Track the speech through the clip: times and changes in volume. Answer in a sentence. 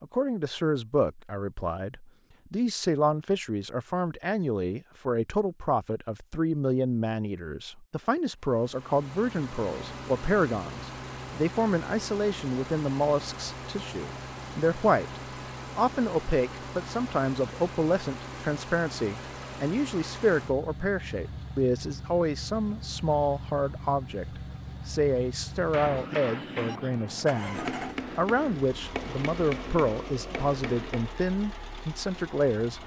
You can hear the speech from 0.0 to 32.8 s, at a steady volume.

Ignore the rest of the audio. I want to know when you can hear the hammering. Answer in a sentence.
The hammering can be heard from 25.5 to 31.1 s.